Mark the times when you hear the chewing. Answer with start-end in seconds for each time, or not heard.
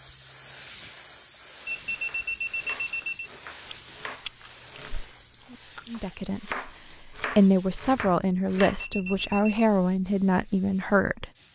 3.6-6.1.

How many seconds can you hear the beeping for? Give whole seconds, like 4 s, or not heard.
3 s.